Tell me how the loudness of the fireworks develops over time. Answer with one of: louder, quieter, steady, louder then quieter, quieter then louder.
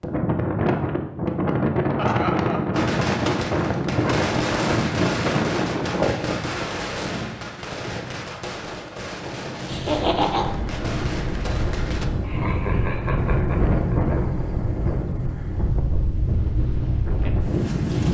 quieter.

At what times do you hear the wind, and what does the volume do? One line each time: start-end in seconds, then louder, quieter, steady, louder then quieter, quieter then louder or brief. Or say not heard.
0.0-18.0 quieter then louder.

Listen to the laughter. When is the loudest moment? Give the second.
10 s.